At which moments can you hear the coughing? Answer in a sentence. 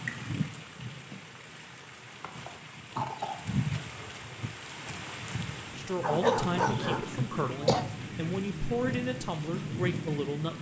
You can hear the coughing from 2.2 to 3.4 s and from 6.8 to 7.8 s.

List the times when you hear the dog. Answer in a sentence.
The dog can be heard from 6.0 to 7.0 s.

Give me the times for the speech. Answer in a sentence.
You can hear the speech from 5.8 to 10.5 s.